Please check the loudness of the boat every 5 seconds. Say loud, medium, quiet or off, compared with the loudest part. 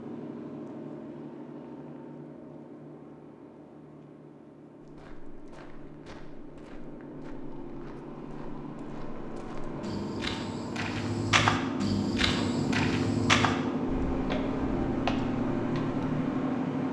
quiet, quiet, loud, loud.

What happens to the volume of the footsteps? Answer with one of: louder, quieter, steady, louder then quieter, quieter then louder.
louder then quieter.